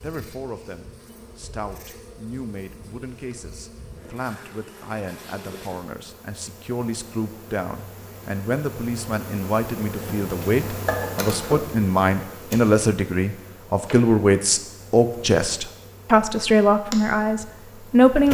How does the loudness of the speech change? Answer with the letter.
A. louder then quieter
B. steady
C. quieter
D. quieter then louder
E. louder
E.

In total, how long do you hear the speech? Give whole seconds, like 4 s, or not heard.
18 s.